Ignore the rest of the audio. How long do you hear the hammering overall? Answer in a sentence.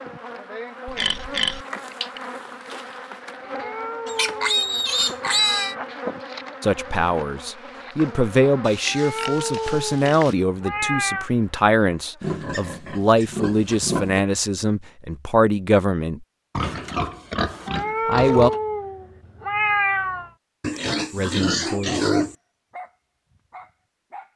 The hammering can't be heard in this clip.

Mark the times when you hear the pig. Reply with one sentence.
You can hear the pig from 0.8 to 2.1 s, from 4.0 to 5.8 s, from 8.7 to 10.3 s, from 12.2 to 14.2 s, from 16.6 to 18.6 s and from 20.6 to 22.4 s.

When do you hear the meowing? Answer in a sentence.
You can hear the meowing from 3.5 to 5.8 s, from 8.8 to 11.3 s and from 17.6 to 20.3 s.